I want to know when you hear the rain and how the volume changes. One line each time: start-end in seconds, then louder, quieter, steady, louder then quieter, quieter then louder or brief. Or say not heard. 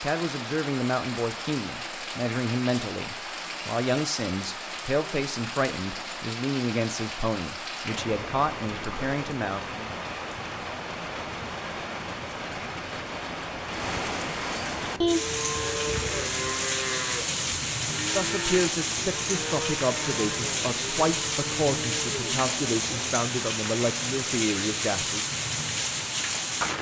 0.0-26.7 louder.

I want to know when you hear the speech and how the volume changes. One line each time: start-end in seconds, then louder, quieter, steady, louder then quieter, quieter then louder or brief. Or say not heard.
0.0-9.9 steady
18.1-25.2 steady.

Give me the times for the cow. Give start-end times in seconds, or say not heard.
14.8-23.1.